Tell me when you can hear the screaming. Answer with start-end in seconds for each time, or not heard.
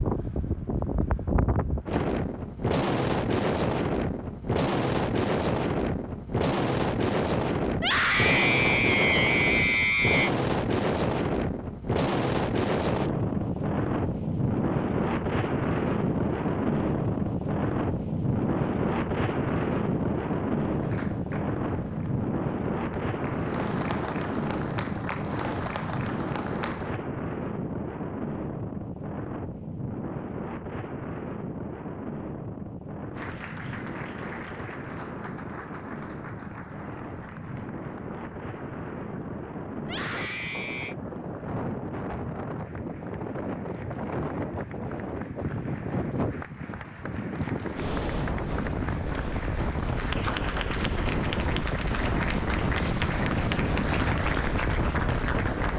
7.8-10.3, 39.8-41.0.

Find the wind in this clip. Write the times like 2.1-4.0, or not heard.
0.0-55.7.